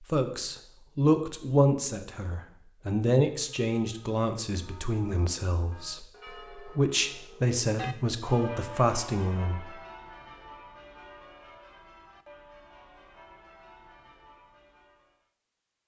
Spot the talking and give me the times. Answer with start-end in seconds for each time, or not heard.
0.0-9.8.